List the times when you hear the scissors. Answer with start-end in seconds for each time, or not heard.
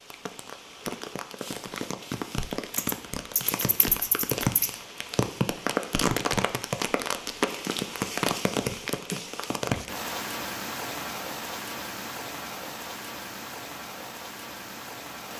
2.7-4.7.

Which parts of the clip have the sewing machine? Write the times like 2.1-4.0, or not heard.
not heard.